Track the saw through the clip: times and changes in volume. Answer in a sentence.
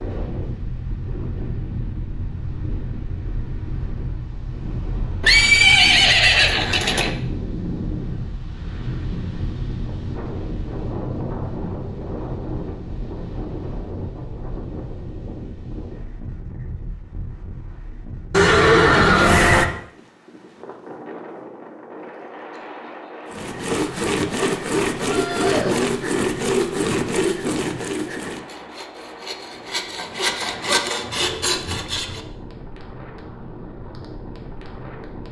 The saw can be heard from 23.3 to 32.2 s, getting quieter then louder.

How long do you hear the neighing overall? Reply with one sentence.
The neighing can be heard for 4 seconds in total.